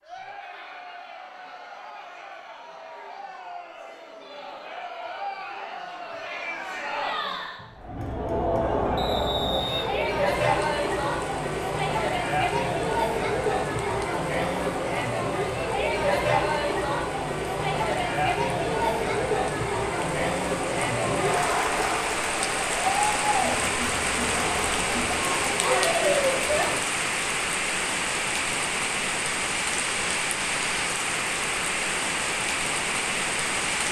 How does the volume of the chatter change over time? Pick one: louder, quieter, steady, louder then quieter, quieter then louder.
louder.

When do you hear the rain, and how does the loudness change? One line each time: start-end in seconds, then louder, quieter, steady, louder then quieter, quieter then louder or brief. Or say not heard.
10.5-33.8 louder.